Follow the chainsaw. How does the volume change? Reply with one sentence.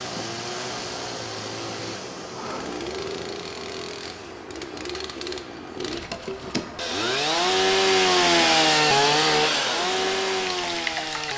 The volume of the chainsaw goes up.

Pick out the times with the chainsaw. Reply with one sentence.
The chainsaw can be heard from 0.0 to 11.3 s.